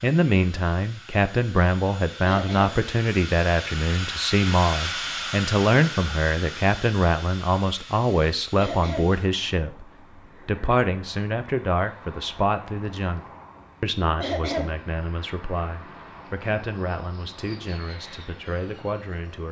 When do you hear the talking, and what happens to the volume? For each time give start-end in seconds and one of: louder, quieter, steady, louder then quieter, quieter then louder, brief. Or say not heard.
0.0-9.8 steady
10.4-19.4 quieter.